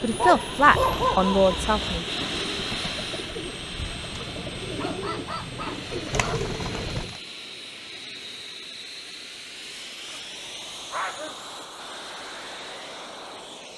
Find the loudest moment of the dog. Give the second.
1 s.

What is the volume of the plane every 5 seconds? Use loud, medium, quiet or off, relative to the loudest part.
loud, medium, medium.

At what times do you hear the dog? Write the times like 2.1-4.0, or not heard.
0.1-2.0, 4.8-6.4, 10.1-11.4.